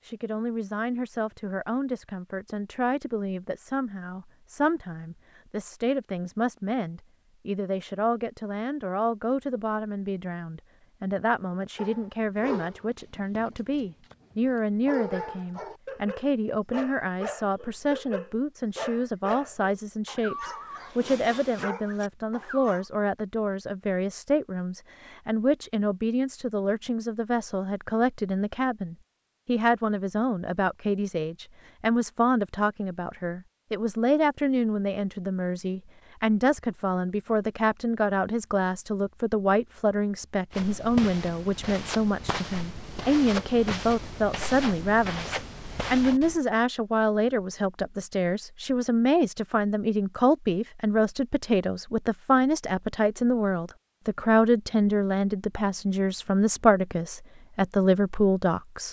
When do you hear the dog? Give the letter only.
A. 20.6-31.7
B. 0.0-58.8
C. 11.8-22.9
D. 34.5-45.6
C.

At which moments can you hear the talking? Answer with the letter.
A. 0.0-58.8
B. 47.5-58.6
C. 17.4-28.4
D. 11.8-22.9
A.